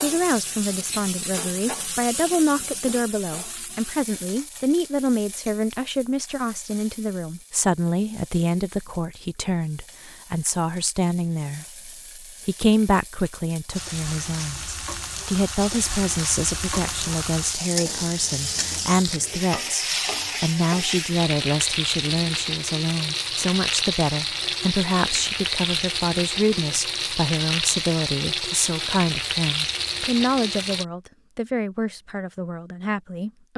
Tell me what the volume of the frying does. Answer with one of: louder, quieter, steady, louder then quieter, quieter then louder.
quieter then louder.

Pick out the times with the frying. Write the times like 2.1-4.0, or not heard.
0.0-30.9.